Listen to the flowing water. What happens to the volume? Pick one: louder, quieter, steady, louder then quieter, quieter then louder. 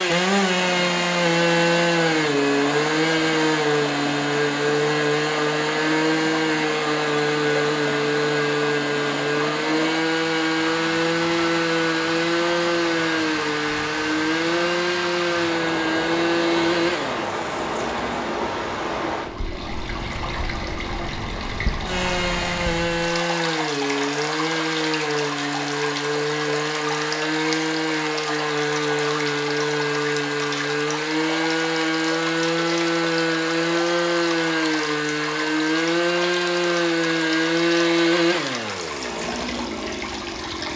steady.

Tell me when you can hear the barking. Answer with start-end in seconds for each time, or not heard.
not heard.